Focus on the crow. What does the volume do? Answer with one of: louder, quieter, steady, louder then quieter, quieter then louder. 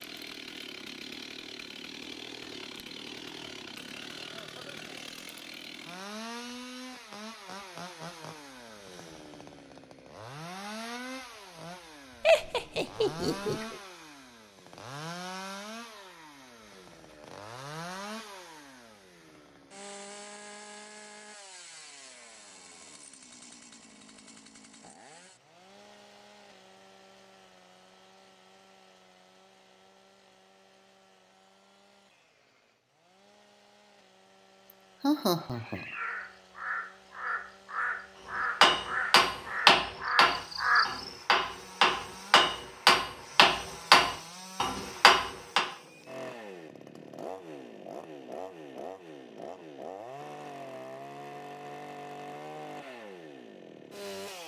louder.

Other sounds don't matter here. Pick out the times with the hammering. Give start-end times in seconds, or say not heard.
38.6-45.6.